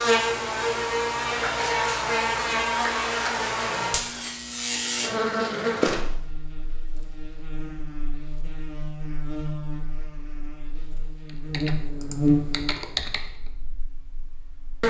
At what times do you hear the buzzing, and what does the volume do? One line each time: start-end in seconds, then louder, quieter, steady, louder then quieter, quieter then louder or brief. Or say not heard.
0.0-14.8 quieter then louder.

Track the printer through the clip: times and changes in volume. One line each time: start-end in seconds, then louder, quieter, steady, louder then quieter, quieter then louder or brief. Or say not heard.
not heard.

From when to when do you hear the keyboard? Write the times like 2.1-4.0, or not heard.
11.2-13.5.